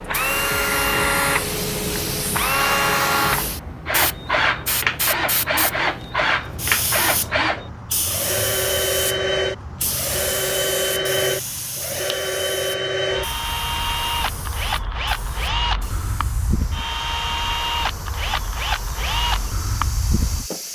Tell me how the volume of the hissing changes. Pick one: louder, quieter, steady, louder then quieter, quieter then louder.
quieter.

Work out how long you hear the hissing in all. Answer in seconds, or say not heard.
21 s.